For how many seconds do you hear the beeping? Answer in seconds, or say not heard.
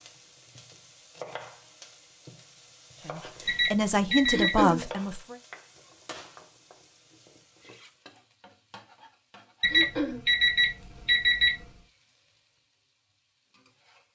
3 s.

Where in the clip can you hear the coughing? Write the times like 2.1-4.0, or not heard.
4.3-4.8, 9.7-10.2.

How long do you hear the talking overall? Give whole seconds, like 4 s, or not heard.
2 s.